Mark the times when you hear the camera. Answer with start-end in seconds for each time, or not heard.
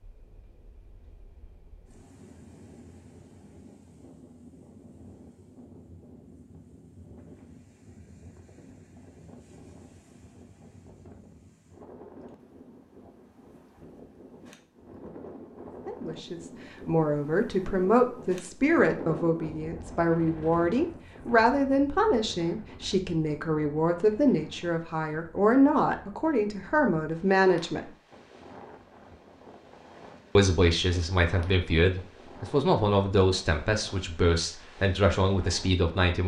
not heard.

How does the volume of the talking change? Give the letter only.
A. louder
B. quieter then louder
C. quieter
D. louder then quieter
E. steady
E.